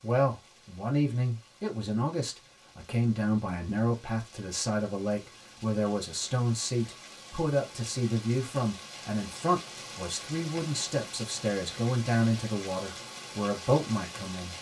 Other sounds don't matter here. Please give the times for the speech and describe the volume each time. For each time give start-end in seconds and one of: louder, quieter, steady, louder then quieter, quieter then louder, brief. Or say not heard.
0.0-14.5 steady.